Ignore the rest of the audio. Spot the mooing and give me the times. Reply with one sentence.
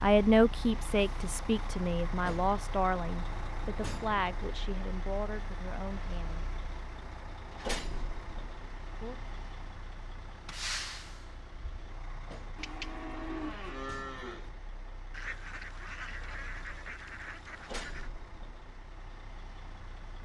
The mooing can be heard from 12.6 to 14.5 s.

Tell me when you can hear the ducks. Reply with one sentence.
You can hear the ducks from 15.1 to 18.1 s.